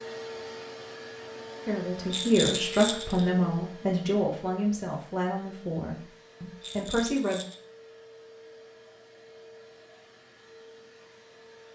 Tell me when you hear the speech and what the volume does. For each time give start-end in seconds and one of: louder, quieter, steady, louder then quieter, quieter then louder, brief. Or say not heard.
1.6-7.4 quieter.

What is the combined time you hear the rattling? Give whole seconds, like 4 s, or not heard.
2 s.